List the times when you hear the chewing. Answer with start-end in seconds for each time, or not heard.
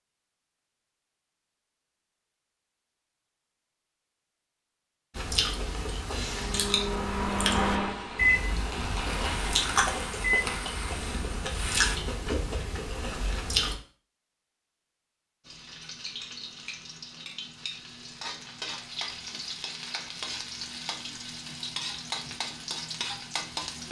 5.2-13.8.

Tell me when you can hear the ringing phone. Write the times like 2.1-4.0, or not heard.
not heard.